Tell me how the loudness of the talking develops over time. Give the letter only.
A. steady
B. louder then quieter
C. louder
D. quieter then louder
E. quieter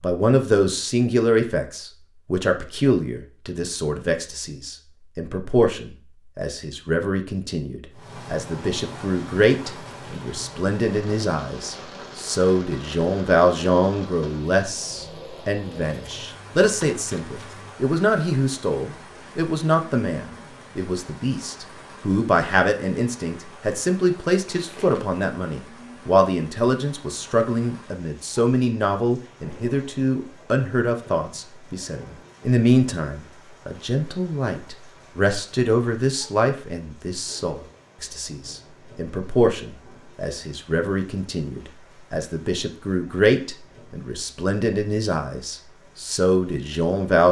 A.